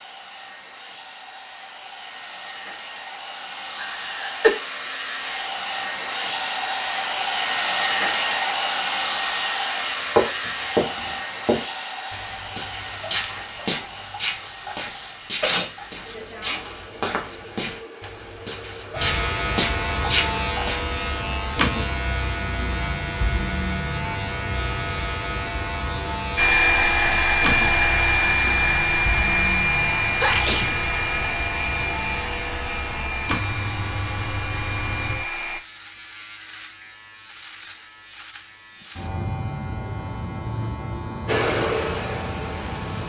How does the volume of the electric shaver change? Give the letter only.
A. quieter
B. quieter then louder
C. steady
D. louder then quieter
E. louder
A.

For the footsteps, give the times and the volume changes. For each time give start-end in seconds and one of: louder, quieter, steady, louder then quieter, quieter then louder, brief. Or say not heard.
10.2-20.8 quieter then louder.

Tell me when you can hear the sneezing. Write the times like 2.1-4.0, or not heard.
3.8-4.5, 14.9-16.1, 30.2-30.8.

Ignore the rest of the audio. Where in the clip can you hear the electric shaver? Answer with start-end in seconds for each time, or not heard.
18.9-43.0.